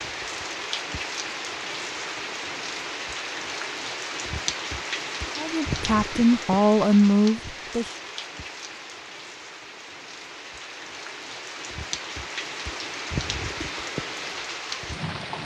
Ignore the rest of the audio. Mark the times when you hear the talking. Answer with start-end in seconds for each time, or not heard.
5.3-7.9.